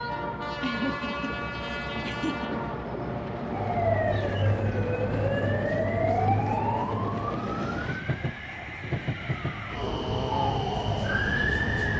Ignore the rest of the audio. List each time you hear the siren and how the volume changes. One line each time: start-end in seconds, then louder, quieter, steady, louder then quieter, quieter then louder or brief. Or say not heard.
3.5-11.9 quieter then louder.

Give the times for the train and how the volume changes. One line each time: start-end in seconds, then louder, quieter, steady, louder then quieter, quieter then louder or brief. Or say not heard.
0.0-11.9 steady.